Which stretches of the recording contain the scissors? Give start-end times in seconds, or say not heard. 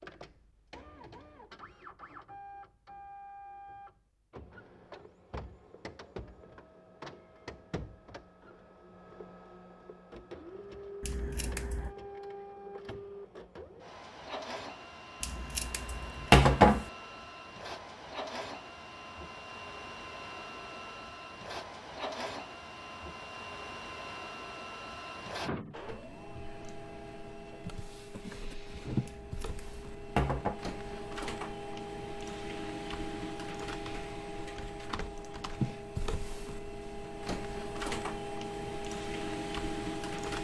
11.0-11.9, 15.2-16.9, 29.1-30.6.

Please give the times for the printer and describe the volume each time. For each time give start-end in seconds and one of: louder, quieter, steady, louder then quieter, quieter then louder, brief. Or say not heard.
0.0-40.3 louder.